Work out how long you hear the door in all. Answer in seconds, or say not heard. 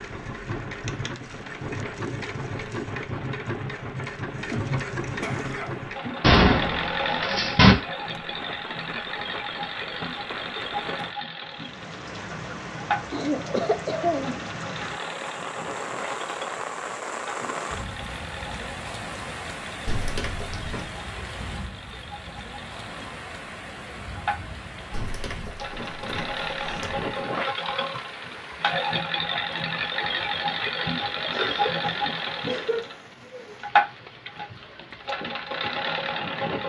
5 s.